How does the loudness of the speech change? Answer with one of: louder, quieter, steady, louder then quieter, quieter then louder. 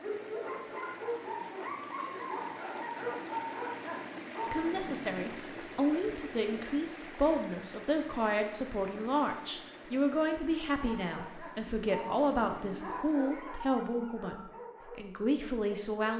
steady.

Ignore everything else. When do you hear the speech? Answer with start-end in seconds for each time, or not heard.
4.5-16.1.